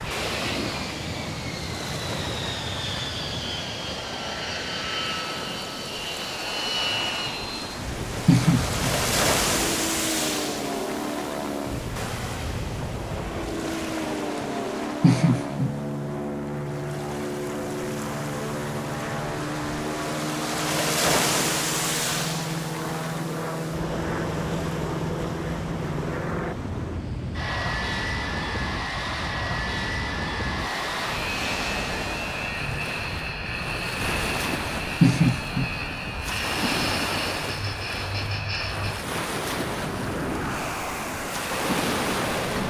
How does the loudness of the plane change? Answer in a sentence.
The volume of the plane stays about the same.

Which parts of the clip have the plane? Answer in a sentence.
You can hear the plane from 0.0 to 42.6 s.